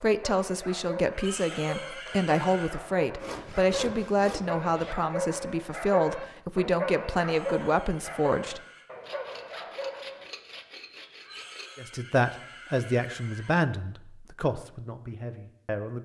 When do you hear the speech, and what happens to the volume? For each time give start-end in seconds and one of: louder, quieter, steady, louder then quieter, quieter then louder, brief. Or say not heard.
0.0-8.6 steady
11.8-16.0 quieter.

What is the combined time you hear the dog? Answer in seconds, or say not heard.
10 s.